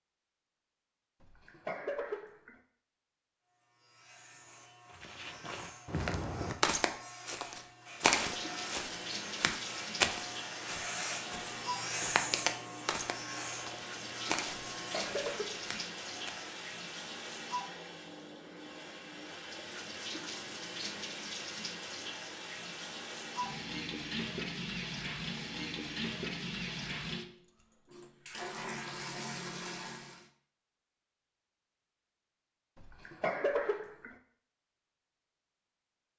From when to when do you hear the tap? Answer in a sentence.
The tap can be heard from 7.8 to 30.3 s.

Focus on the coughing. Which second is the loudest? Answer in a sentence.
The loudest moment of the coughing is at 33 seconds.